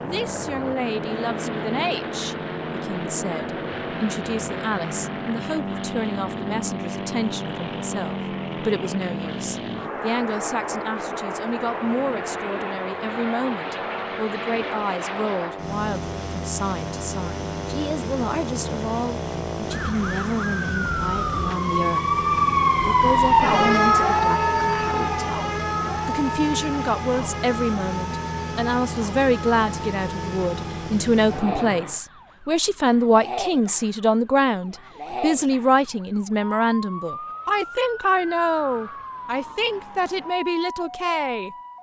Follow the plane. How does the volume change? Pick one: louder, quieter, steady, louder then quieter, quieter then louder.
steady.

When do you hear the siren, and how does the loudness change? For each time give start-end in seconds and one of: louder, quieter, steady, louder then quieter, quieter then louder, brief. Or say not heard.
0.0-41.7 louder then quieter.